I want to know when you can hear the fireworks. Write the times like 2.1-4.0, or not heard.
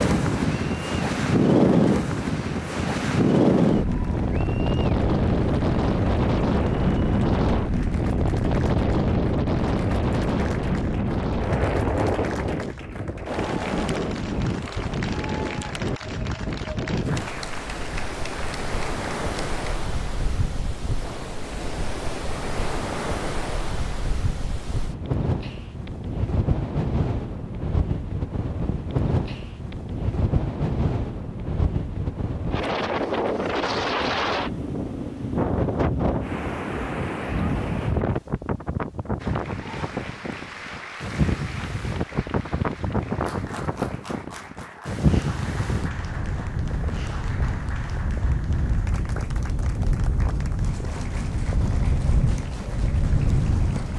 not heard.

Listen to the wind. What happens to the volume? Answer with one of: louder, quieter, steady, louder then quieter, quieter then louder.
quieter.